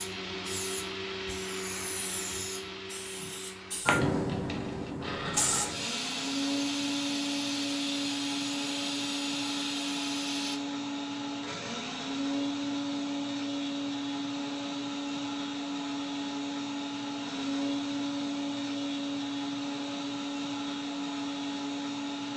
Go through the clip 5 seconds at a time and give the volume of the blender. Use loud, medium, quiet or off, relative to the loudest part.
medium, loud, loud, loud, loud.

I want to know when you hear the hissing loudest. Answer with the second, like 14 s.
4 s.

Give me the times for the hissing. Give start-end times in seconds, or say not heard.
0.0-10.6.